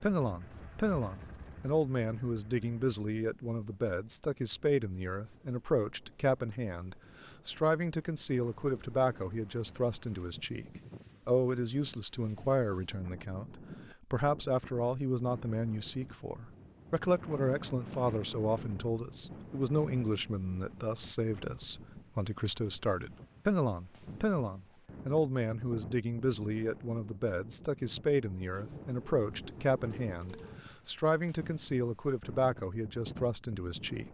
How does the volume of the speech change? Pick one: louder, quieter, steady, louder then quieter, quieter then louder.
steady.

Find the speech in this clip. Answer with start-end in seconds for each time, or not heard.
0.0-10.7, 11.2-34.0.